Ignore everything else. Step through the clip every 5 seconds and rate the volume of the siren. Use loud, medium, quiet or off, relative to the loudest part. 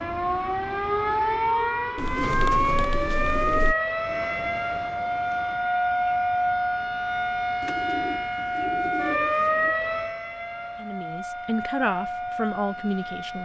loud, loud, medium.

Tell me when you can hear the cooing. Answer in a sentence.
You can hear the cooing from 1.9 to 3.8 s and from 7.6 to 9.8 s.